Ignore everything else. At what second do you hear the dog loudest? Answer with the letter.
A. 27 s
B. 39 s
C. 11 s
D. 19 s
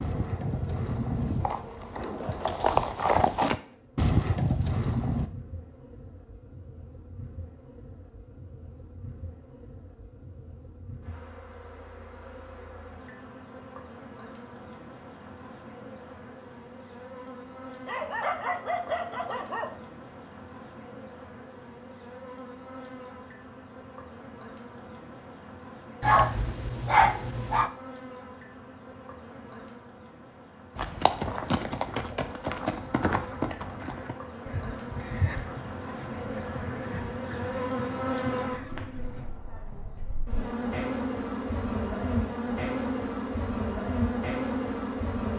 A.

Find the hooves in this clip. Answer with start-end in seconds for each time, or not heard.
0.0-5.3, 30.8-39.2.